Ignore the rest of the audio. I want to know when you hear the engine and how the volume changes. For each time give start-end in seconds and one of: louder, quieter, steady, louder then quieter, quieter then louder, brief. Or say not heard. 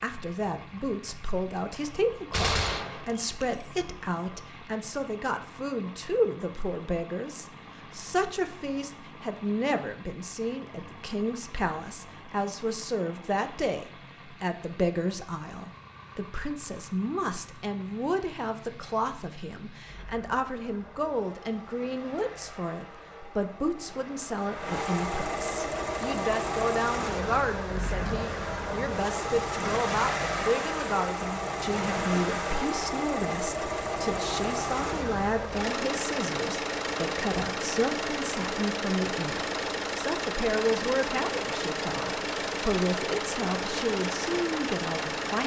0.0-45.4 louder.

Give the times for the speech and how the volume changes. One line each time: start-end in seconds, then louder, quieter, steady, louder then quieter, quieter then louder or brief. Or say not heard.
0.0-45.4 steady.